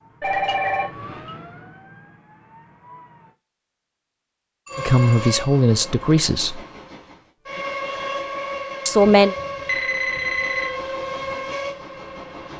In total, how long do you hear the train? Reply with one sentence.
The train can be heard for 8 seconds in total.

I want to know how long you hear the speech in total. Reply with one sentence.
You can hear the speech for 2 seconds altogether.